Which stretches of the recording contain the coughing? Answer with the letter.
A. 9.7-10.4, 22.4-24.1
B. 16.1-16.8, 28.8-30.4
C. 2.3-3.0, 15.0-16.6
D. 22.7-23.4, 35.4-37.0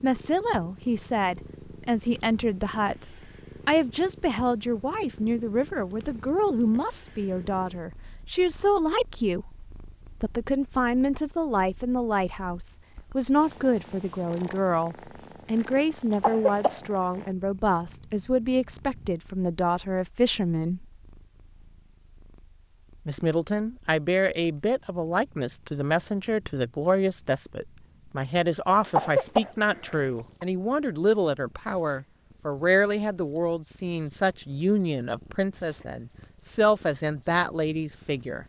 B.